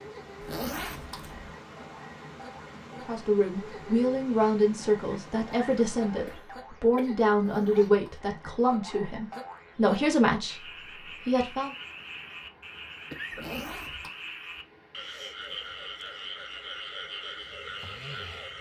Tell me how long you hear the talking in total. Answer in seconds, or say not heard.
9 s.